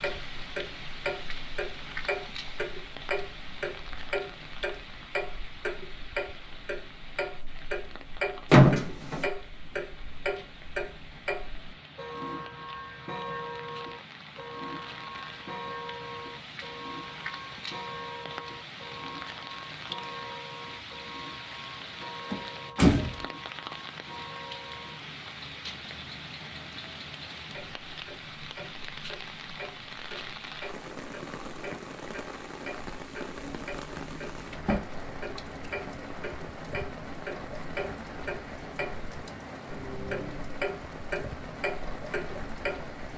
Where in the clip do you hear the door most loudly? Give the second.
9 s.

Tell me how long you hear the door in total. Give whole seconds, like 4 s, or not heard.
3 s.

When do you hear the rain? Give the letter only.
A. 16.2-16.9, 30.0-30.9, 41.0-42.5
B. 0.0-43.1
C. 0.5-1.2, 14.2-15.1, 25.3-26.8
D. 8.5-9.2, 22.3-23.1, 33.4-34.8
B.